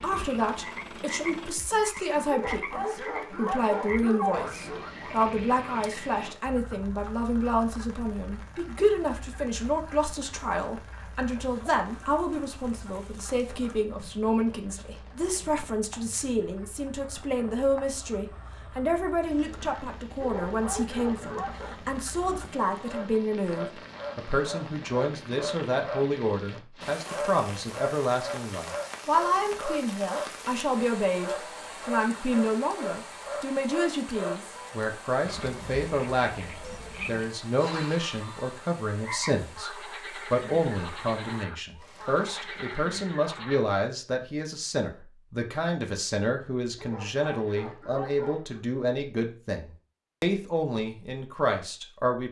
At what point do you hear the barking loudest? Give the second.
4 s.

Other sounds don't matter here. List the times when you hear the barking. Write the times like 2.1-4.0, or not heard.
2.2-4.8, 20.1-21.8, 46.8-48.6.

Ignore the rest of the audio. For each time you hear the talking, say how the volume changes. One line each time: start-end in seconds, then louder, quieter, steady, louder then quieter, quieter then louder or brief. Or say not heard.
0.0-52.2 steady.